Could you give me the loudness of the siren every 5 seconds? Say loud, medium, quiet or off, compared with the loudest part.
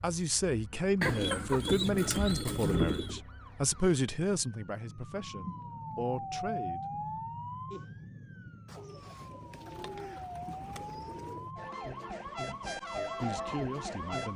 quiet, loud, loud.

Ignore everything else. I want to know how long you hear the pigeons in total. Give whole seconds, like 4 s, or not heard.
5 s.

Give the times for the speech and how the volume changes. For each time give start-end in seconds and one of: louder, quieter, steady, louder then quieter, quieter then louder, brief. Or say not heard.
0.0-6.8 quieter
12.4-14.3 brief.